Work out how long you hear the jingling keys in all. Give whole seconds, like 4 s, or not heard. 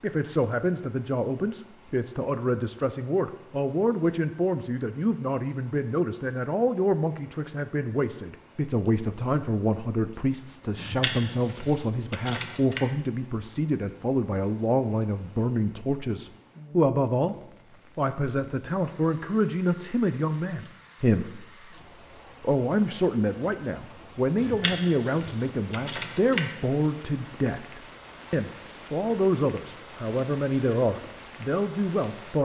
4 s.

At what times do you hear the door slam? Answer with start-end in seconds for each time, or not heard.
not heard.